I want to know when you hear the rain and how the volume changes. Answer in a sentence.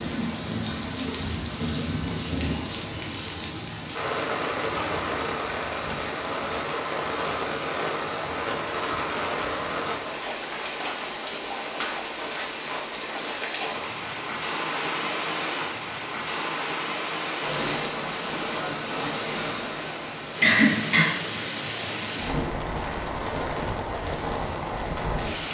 The rain can be heard from 0.0 to 25.4 s, at a steady volume.